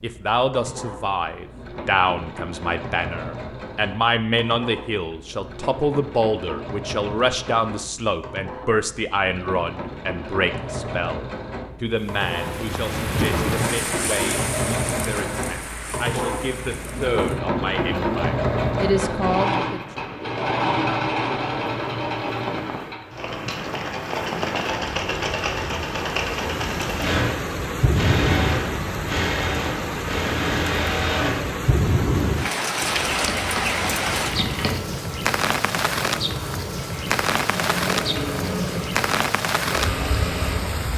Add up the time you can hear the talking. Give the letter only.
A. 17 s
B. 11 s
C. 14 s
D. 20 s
D.